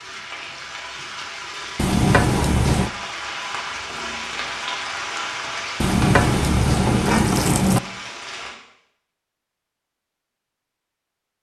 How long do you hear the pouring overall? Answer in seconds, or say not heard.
3 s.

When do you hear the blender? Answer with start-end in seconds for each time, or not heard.
not heard.